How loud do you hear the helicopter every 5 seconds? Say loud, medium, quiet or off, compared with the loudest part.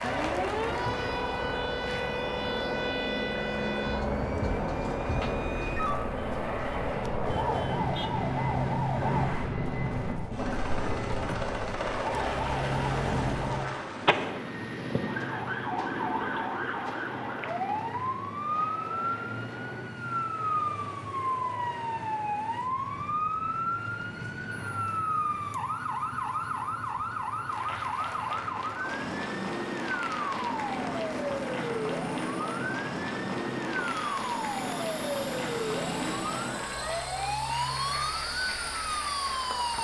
loud, loud, loud, medium, quiet, quiet, medium, medium.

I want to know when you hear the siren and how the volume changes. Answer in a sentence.
The siren can be heard from 0.0 to 39.7 s, at a steady volume.